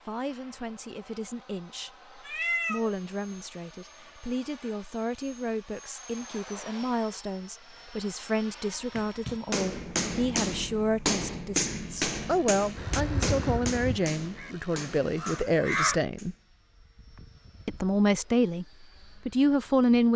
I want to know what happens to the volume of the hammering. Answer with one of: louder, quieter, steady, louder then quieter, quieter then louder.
quieter.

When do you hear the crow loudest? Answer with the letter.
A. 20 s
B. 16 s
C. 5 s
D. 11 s
B.